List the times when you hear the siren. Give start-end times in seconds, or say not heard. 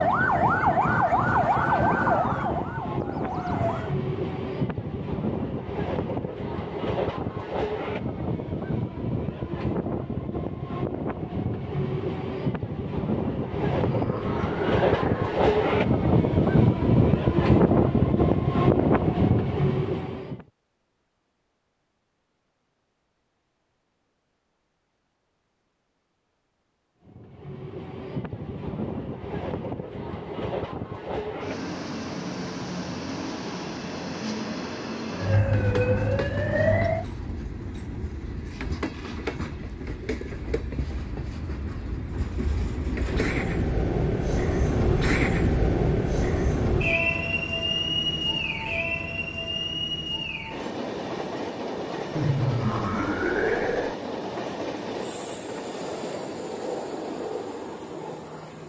0.0-4.0, 35.1-37.0.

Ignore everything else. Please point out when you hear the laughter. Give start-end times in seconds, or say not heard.
13.6-15.3, 52.1-54.0.